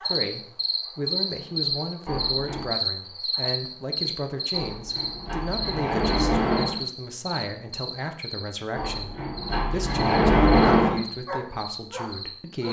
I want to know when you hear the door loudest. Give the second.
11 s.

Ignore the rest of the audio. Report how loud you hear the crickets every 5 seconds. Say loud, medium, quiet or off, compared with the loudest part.
loud, medium, medium.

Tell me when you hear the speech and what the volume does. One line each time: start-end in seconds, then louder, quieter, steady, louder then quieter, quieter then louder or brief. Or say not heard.
0.0-12.6 steady.